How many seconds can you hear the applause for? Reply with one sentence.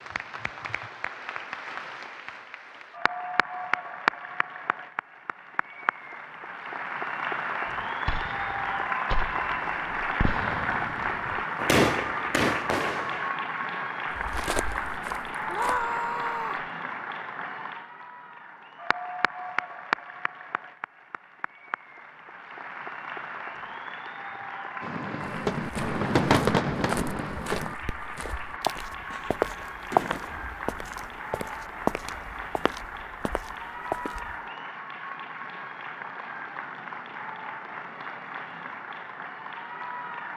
The applause can be heard for 40 seconds in total.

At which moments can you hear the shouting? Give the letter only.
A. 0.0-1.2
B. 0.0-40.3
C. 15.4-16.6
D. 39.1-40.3
C.